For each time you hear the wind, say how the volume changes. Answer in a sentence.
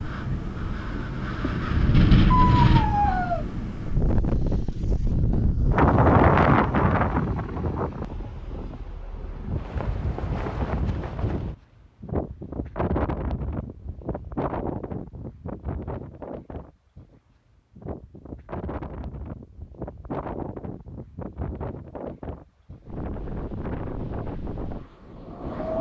You can hear the wind from 0.0 to 25.7 s, getting quieter.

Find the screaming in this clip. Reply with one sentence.
You can hear the screaming from 2.3 to 3.5 s.